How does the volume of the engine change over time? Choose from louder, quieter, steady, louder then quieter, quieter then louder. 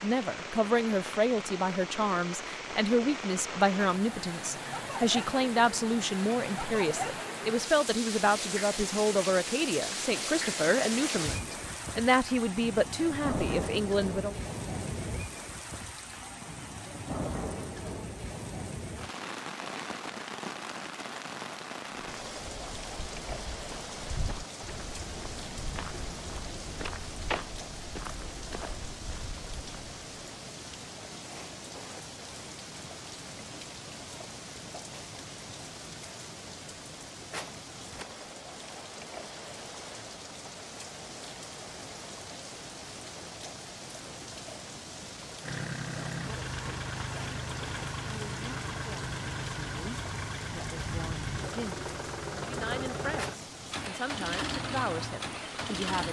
steady.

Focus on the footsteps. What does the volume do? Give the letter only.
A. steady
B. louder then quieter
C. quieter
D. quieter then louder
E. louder
B.